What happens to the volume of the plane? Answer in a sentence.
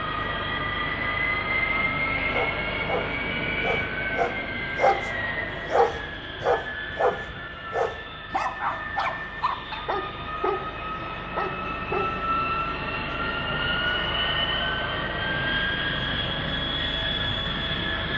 The volume of the plane goes down, then up.